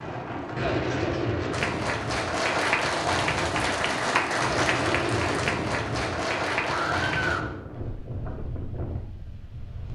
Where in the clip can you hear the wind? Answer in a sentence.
The wind can be heard from 0.0 to 9.9 s.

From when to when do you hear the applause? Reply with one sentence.
You can hear the applause from 1.5 to 7.5 s.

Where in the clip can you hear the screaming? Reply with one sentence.
The screaming can be heard from 6.7 to 7.5 s.